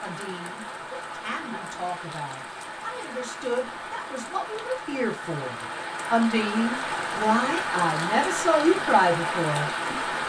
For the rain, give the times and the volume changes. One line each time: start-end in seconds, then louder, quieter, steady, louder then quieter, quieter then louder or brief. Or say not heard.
0.0-10.2 louder.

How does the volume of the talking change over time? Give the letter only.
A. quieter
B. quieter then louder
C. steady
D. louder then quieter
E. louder
E.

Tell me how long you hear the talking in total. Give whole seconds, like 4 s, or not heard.
10 s.